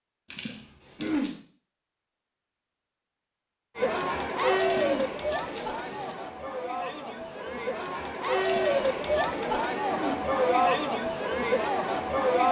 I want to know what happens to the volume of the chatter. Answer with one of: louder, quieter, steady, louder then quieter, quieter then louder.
quieter then louder.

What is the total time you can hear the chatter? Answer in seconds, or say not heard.
9 s.